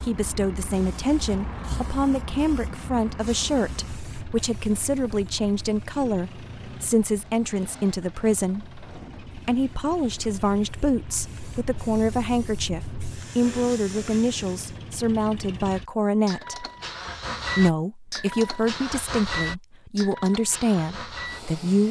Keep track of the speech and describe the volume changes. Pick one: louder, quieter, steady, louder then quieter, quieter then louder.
steady.